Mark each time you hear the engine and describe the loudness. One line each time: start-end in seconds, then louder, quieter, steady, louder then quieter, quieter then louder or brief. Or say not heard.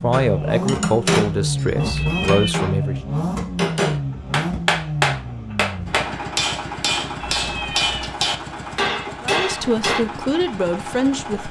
0.0-11.4 quieter.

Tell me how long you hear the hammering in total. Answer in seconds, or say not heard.
9 s.